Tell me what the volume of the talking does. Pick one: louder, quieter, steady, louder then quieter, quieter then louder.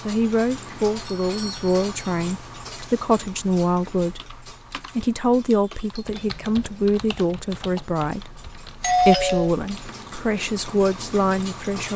steady.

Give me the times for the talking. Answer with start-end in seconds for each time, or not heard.
0.1-11.9.